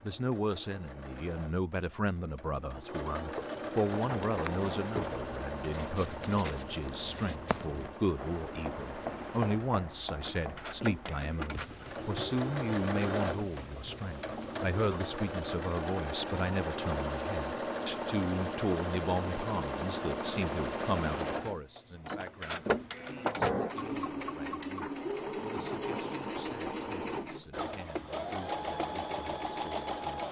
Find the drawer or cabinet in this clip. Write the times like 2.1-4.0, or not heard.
3.4-5.2, 22.6-23.8.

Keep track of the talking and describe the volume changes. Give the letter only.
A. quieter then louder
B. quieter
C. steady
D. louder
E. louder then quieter
B.